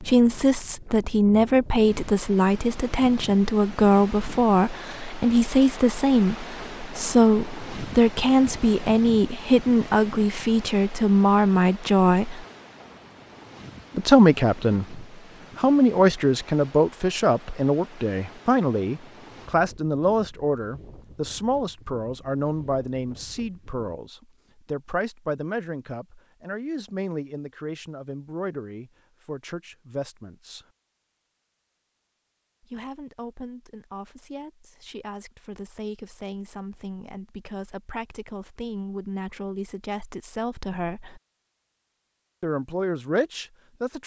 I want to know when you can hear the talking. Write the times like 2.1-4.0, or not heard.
0.0-12.4, 13.9-30.6, 32.6-41.2, 42.4-44.0.